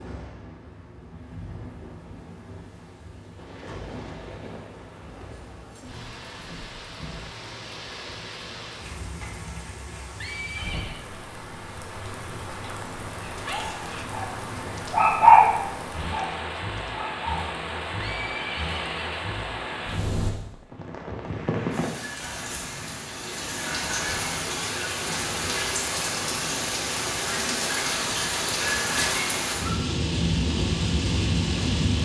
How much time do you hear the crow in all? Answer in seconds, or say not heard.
not heard.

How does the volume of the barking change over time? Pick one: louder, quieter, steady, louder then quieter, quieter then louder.
louder then quieter.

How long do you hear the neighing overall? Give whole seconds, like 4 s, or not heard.
2 s.